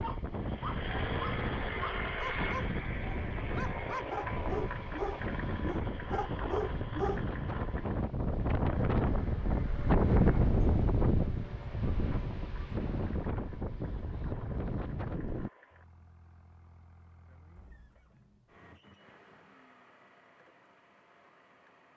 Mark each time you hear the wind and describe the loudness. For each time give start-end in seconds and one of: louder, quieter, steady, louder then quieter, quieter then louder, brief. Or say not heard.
0.0-15.5 louder then quieter.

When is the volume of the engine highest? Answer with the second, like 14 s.
2 s.